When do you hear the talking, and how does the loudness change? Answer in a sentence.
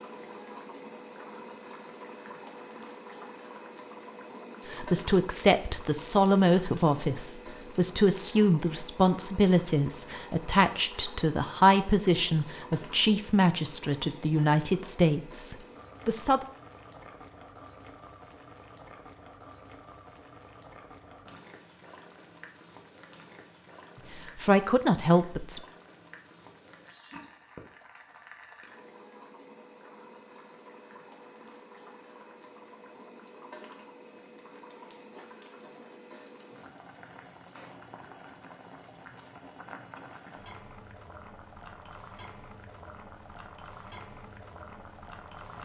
The talking can be heard from 4.7 to 16.4 s, at a steady volume; and briefly from 24.1 to 25.6 s.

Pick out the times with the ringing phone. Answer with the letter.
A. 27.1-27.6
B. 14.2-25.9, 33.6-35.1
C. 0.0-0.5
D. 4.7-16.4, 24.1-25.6
A.